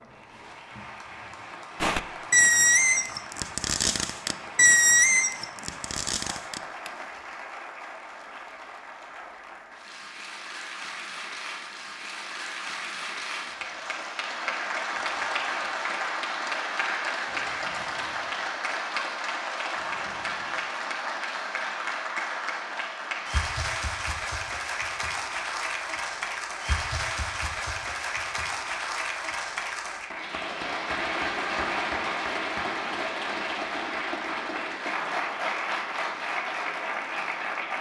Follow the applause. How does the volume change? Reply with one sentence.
The loudness of the applause goes up.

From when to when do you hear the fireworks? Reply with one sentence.
The fireworks can be heard from 1.8 to 7.3 s.